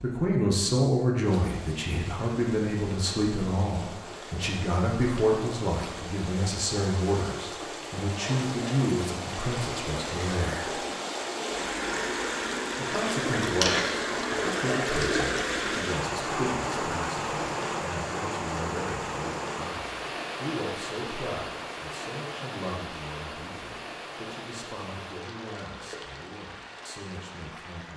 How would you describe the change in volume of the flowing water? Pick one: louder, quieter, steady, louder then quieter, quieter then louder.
louder then quieter.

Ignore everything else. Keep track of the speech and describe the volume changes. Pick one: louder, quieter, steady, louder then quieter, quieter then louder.
quieter.